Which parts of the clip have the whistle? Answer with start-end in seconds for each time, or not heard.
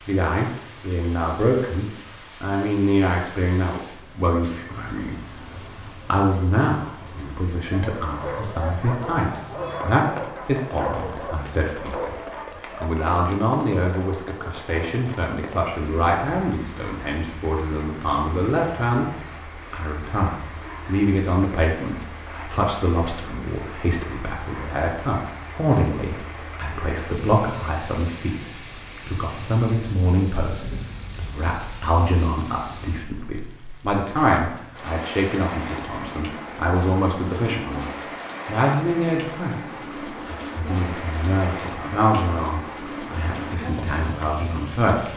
not heard.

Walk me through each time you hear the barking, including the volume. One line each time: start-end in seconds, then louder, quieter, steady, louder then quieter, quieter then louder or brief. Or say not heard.
7.7-12.9 steady.